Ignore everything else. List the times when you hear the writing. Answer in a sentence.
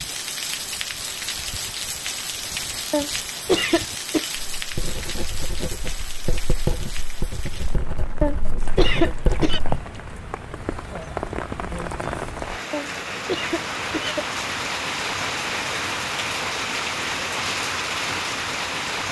The writing can be heard from 4.5 to 9.8 s.